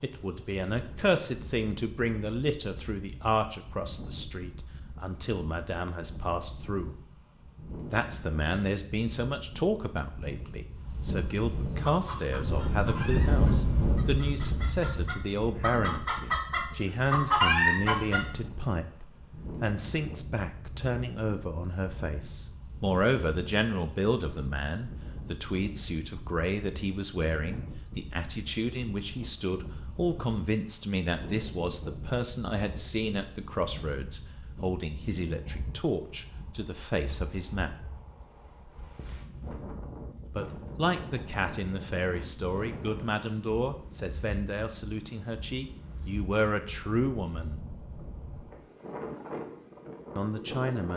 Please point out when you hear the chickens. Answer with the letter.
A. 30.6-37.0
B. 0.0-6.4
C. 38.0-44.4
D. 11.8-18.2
D.